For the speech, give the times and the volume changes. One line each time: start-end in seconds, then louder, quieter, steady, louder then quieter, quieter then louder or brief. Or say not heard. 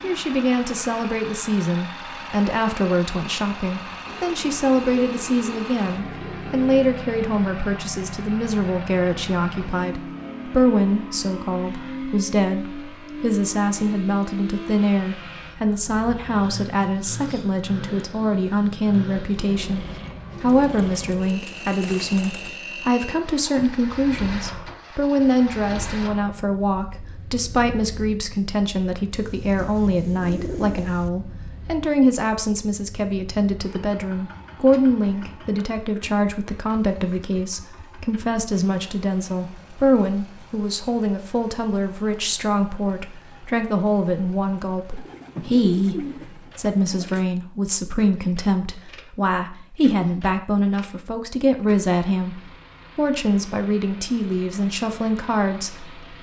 0.0-56.0 steady.